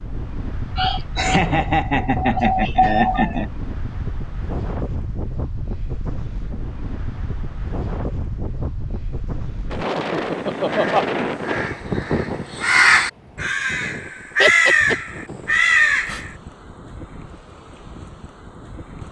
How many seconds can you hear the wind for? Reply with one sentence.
The wind can be heard for 19 seconds in total.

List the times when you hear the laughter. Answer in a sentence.
You can hear the laughter from 0.8 to 3.5 s, from 9.8 to 11.1 s and from 14.4 to 14.9 s.